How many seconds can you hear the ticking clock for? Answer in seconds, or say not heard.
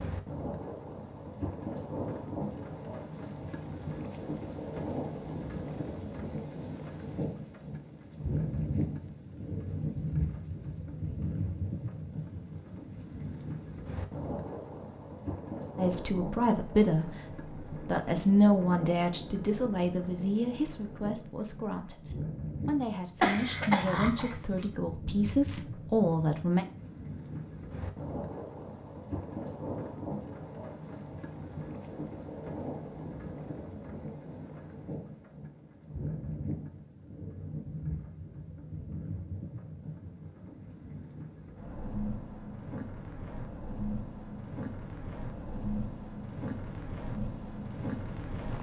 not heard.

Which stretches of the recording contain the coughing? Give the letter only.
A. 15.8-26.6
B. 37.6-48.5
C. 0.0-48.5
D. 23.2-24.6
D.